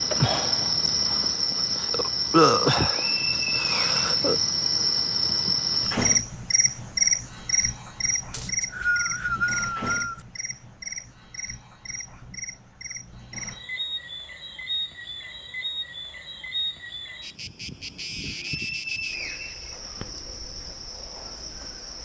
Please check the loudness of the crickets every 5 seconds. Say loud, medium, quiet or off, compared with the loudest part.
loud, loud, quiet, quiet, quiet.